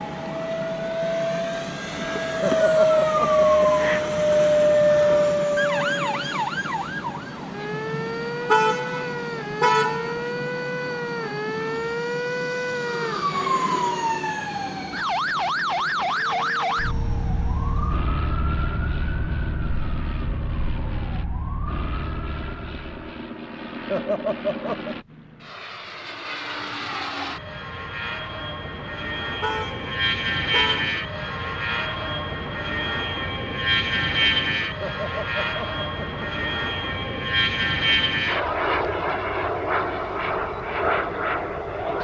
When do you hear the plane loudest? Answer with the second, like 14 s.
5 s.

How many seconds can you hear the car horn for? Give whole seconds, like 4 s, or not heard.
3 s.